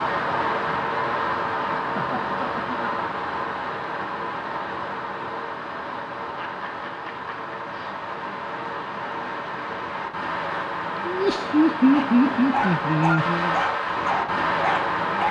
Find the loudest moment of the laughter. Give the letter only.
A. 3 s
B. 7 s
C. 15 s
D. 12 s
D.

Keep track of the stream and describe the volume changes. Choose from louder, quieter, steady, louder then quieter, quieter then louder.
quieter then louder.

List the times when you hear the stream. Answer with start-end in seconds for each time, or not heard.
0.0-15.2.